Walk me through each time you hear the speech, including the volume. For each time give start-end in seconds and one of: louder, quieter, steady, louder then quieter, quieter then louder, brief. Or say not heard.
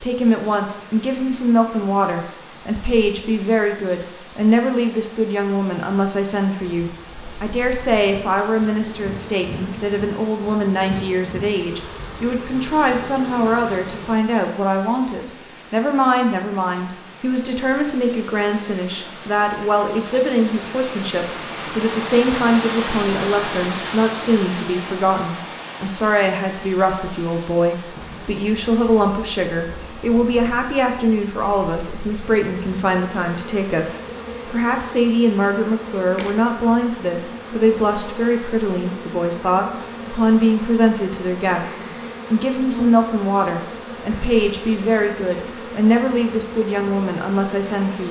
0.0-48.0 steady.